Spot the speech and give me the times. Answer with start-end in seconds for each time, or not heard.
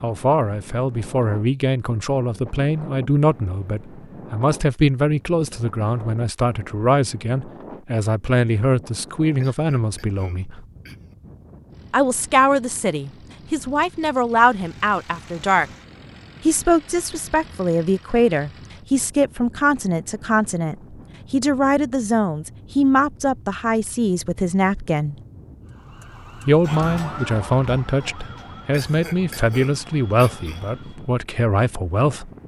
0.0-10.6, 11.9-15.7, 16.4-25.1, 26.4-32.3.